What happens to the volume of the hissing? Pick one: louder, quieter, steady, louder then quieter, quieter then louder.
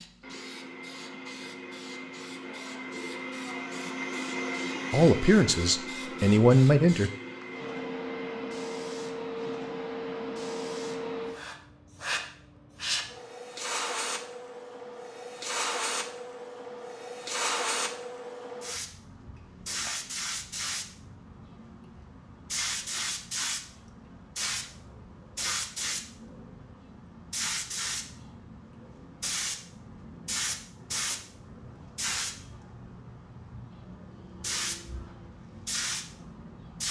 louder.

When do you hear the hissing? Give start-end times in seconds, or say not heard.
0.0-36.8.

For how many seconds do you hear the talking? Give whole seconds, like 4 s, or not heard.
2 s.